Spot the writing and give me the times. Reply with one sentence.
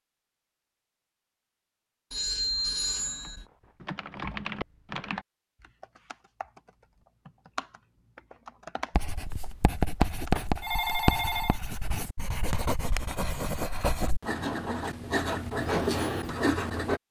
The writing can be heard from 8.9 to 17.0 s.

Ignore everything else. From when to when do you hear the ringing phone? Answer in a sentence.
The ringing phone can be heard from 2.1 to 3.5 s and from 10.0 to 11.9 s.